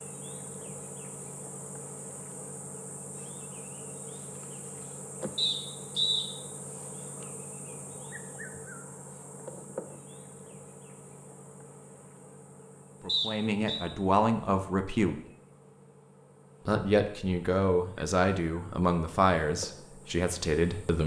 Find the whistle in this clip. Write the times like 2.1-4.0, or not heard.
5.3-6.2, 13.1-13.8.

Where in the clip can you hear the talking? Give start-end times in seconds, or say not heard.
13.0-15.2, 16.6-21.0.